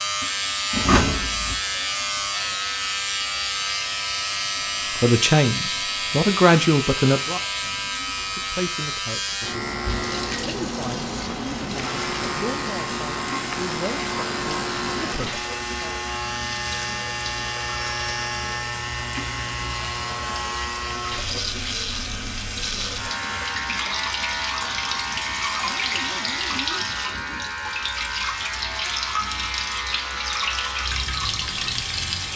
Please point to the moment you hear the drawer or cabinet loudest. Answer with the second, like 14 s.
1 s.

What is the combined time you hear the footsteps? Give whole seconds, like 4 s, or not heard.
not heard.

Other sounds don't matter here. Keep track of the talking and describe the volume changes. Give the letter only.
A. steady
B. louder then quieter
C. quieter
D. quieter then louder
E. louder
C.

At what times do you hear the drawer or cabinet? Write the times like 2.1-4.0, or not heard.
0.7-1.6, 25.4-26.9.